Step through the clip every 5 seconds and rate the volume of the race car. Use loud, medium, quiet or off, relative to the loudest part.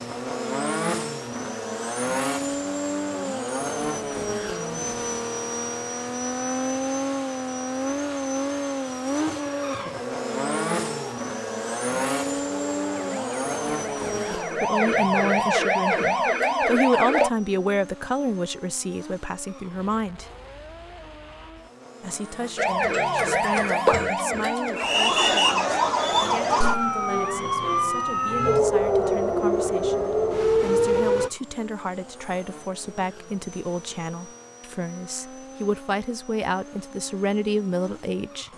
loud, loud, loud, quiet, quiet, quiet, quiet, quiet.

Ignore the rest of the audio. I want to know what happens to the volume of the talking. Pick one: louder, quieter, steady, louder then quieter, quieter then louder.
quieter then louder.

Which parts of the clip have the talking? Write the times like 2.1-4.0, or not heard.
14.3-20.2, 22.0-38.5.